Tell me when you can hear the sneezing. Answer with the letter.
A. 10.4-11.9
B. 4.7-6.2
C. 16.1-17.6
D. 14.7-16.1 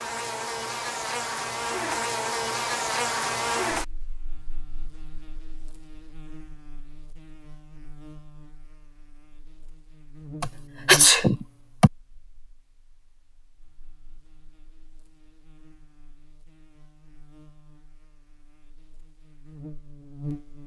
A.